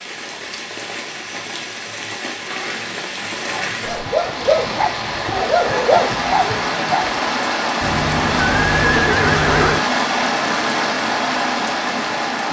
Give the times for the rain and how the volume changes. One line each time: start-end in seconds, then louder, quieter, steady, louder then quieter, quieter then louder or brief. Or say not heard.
0.0-12.4 louder.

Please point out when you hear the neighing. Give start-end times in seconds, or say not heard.
2.5-4.0, 7.8-9.8.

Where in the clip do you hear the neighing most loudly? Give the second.
9 s.